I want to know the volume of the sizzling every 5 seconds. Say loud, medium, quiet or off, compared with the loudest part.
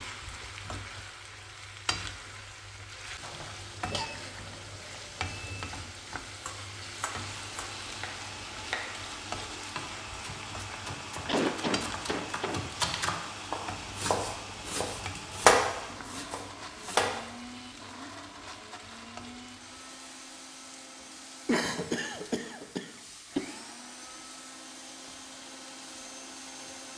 loud, loud, loud, medium, medium, medium.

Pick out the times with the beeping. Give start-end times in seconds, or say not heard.
3.9-5.7.